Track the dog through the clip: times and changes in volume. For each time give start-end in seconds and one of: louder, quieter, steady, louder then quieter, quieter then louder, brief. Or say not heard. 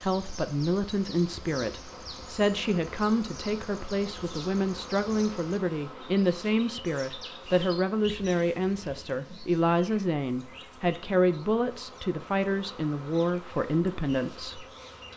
not heard.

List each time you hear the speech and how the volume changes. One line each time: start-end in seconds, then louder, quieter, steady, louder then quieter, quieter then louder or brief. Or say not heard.
0.0-14.7 steady.